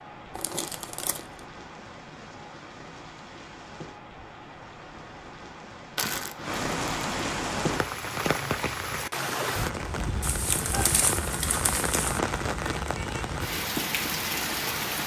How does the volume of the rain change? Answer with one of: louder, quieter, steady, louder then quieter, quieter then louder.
louder.